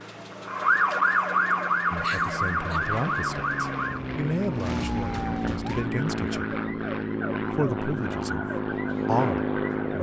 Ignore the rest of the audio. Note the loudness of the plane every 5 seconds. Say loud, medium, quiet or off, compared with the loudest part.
medium, loud.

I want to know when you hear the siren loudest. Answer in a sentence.
The volume of the siren peaks at 1 second.